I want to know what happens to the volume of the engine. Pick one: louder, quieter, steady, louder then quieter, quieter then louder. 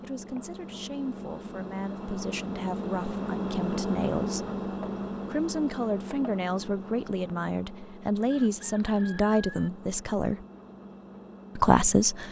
louder then quieter.